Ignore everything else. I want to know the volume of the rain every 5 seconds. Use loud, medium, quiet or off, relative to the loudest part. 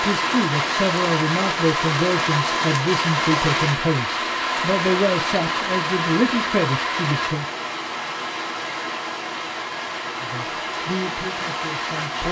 loud, loud, medium.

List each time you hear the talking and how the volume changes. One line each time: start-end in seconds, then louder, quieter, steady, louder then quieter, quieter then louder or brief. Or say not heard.
0.0-7.5 steady
10.2-12.2 brief.